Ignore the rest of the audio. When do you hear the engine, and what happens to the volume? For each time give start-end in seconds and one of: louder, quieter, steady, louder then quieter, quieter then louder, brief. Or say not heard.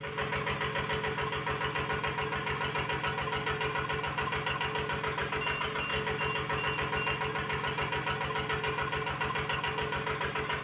0.0-10.5 steady.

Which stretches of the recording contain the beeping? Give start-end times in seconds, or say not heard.
5.4-7.2.